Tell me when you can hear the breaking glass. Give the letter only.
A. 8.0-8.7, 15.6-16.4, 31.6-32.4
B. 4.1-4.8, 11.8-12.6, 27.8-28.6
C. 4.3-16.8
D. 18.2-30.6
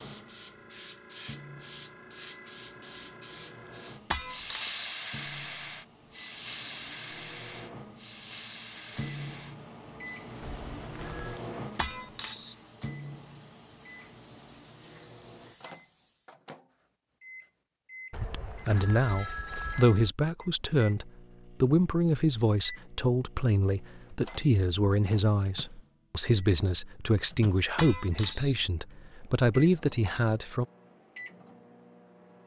B.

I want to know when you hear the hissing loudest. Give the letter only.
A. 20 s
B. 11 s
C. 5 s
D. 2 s
C.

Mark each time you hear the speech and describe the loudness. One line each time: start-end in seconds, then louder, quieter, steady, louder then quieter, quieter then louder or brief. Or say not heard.
18.2-30.6 steady.